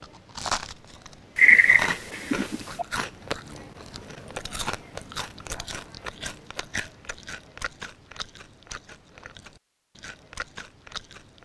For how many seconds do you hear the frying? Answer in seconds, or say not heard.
not heard.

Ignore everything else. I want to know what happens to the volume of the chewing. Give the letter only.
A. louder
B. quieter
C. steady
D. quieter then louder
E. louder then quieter
B.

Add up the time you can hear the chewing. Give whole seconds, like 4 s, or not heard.
11 s.